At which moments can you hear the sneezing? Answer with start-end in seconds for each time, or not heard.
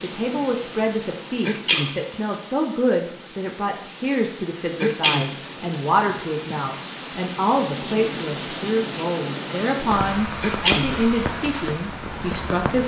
1.4-1.9, 4.8-5.3, 10.4-10.9.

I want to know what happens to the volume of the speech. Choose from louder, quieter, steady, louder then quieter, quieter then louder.
steady.